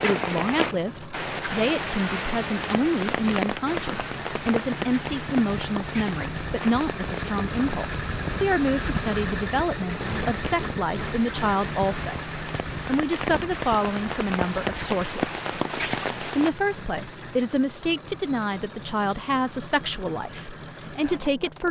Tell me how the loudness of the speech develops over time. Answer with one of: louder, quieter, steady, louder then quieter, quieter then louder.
steady.